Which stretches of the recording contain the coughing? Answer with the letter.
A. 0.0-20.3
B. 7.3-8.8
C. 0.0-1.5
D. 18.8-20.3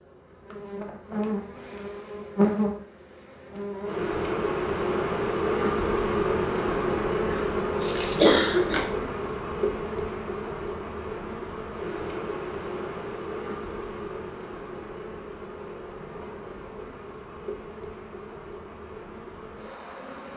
B.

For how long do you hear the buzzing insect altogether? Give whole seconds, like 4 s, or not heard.
20 s.